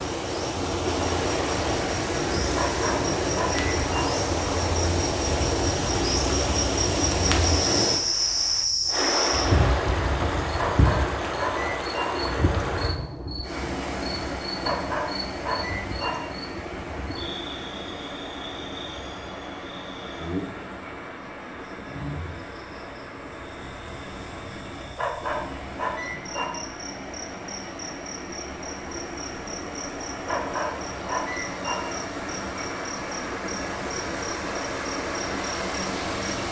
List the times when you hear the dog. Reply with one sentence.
The dog can be heard from 2.5 to 4.1 s, from 10.6 to 12.1 s, from 14.6 to 16.1 s, from 24.9 to 26.5 s and from 30.2 to 31.8 s.